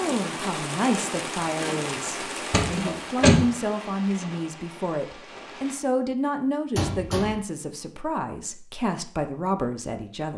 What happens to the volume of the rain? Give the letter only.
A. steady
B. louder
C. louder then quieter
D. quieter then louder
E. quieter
E.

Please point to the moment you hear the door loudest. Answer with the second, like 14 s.
3 s.